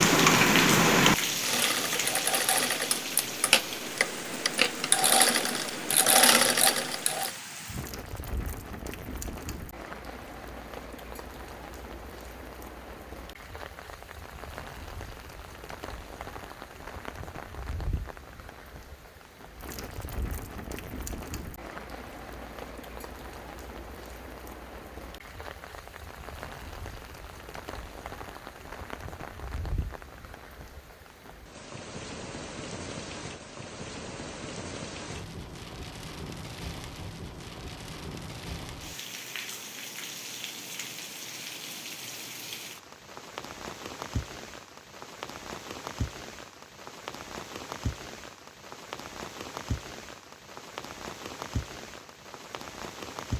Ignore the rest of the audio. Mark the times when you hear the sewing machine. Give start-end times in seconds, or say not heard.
0.0-7.3.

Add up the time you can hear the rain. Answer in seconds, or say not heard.
53 s.